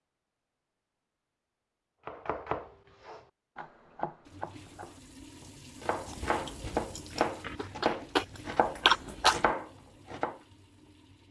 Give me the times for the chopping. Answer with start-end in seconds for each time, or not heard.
2.0-10.3.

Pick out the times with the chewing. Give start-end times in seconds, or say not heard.
6.0-9.5.